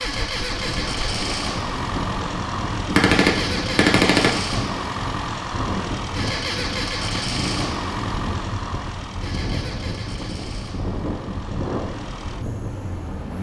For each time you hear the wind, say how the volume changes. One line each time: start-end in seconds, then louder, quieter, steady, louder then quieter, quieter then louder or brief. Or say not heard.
0.0-13.3 steady.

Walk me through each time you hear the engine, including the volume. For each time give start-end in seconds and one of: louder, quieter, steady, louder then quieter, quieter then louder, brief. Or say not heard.
0.0-13.3 quieter.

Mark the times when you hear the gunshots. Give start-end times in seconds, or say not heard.
2.9-4.5.